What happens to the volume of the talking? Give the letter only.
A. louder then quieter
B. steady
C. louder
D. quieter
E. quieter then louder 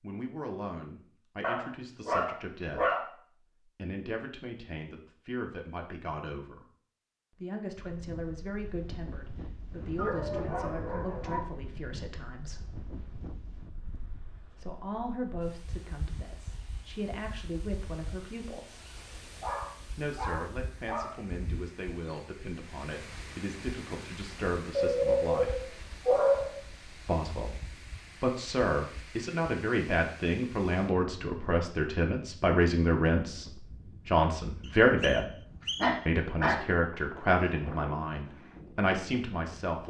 C.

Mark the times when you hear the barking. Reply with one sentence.
You can hear the barking from 1.4 to 3.0 s, from 9.9 to 11.4 s, from 19.4 to 21.1 s, from 24.8 to 26.6 s and from 35.8 to 36.6 s.